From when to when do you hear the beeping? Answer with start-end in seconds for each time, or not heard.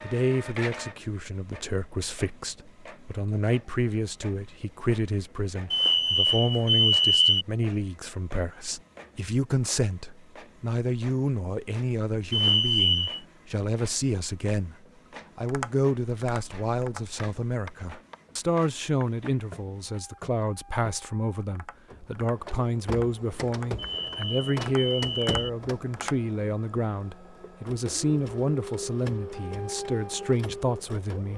5.7-7.5, 12.3-13.2, 23.8-25.5.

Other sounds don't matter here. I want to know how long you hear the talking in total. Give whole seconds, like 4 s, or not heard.
31 s.